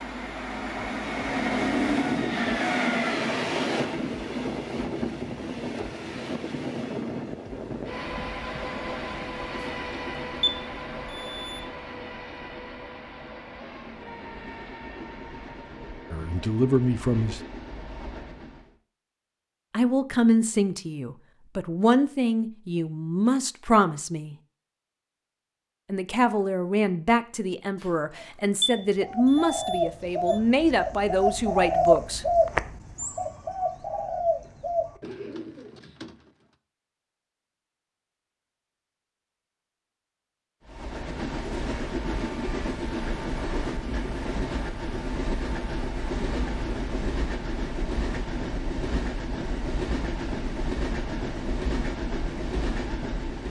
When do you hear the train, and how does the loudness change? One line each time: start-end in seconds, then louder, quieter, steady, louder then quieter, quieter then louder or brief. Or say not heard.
0.0-18.8 quieter
40.6-53.4 steady.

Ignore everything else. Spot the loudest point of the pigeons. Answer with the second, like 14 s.
32 s.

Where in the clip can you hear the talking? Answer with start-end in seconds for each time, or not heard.
16.1-17.4, 19.7-24.4, 25.9-32.4.